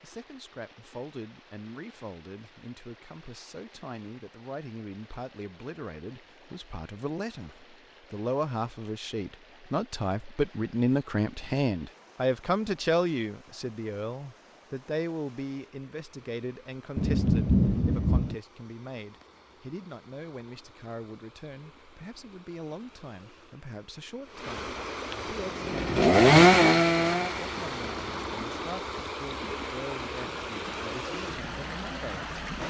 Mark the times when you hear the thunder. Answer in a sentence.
You can hear the thunder from 16.9 to 18.4 s.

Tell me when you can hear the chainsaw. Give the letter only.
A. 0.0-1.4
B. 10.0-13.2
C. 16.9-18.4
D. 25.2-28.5
D.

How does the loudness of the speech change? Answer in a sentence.
The volume of the speech goes up, then down.